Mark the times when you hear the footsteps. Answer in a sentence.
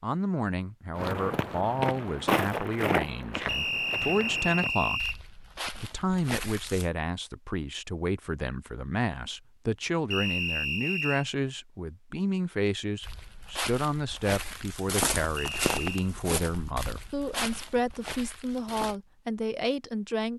You can hear the footsteps from 0.9 to 6.8 s and from 13.0 to 18.9 s.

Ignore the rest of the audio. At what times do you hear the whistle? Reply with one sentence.
The whistle can be heard from 3.5 to 5.2 s, from 10.1 to 11.2 s and from 15.3 to 16.1 s.